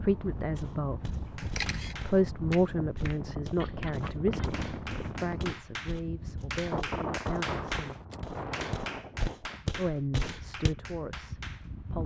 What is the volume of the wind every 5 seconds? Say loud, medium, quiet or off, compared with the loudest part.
loud, loud, medium.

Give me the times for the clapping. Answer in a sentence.
The clapping can be heard from 1.2 to 11.7 s.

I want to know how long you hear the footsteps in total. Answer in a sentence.
You can hear the footsteps for 10 seconds altogether.